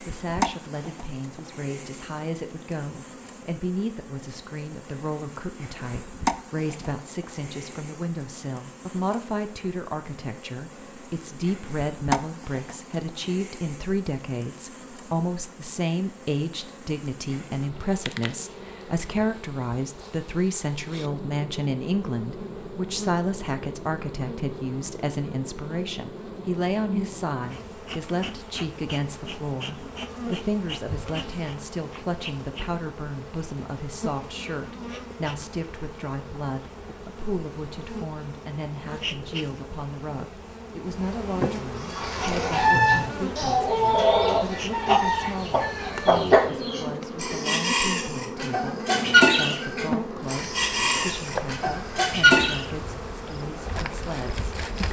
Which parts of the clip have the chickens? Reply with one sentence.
The chickens can be heard from 41.8 to 52.6 s.